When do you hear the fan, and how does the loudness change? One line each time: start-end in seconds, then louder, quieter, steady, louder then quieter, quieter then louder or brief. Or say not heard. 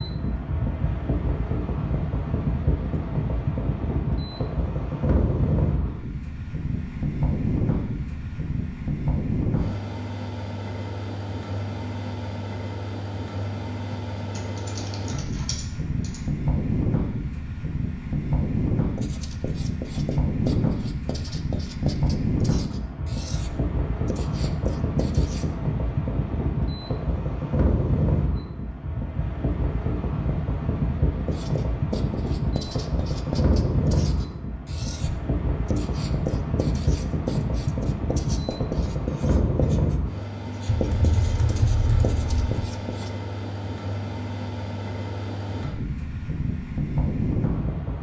0.0-47.9 steady.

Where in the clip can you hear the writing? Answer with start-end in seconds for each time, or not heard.
18.9-25.5, 31.2-43.1.